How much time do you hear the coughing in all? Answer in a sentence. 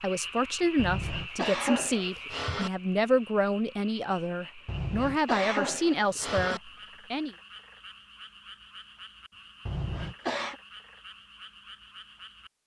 The coughing can be heard for 5 seconds in total.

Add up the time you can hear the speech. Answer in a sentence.
You can hear the speech for 7 seconds altogether.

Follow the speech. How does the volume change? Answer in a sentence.
The loudness of the speech stays about the same.